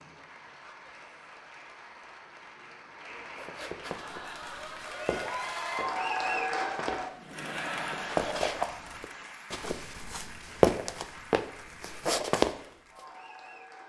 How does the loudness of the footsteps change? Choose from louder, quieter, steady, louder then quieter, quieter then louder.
louder.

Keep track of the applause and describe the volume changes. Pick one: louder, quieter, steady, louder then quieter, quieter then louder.
louder then quieter.